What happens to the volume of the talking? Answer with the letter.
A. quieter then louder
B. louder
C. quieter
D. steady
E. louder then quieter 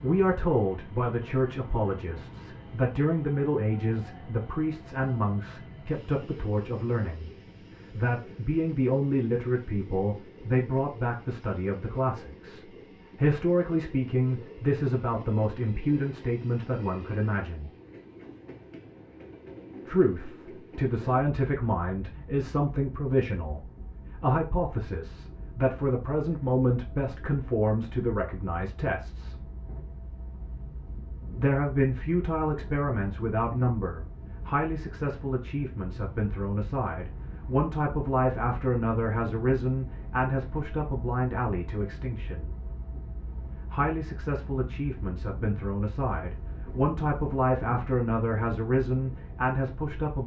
D.